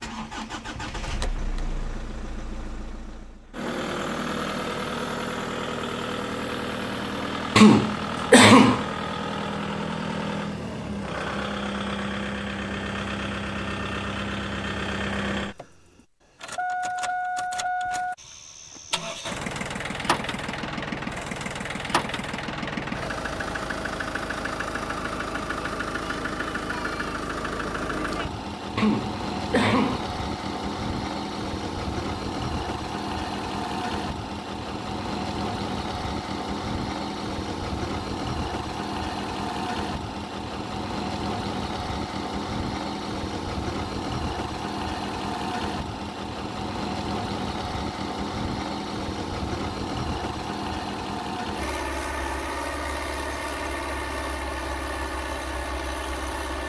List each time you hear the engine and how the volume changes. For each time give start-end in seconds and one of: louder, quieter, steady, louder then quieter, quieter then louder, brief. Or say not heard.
0.0-56.6 steady.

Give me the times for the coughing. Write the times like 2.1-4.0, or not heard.
7.5-8.8, 28.8-30.1.